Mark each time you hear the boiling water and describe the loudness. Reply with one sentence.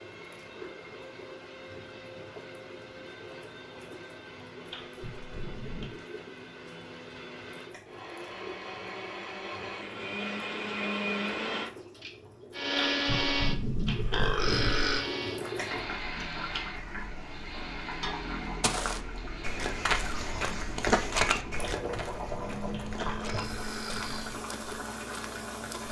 The boiling water can be heard from 0.0 to 25.8 s, getting louder.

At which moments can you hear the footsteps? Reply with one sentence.
You can hear the footsteps from 18.6 to 25.8 s.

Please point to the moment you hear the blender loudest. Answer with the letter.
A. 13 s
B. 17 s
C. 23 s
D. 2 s
A.